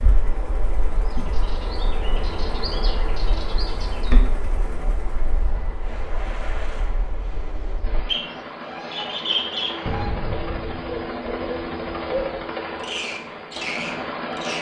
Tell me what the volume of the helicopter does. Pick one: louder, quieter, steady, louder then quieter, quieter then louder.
louder.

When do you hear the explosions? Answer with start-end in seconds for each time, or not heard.
9.8-11.2.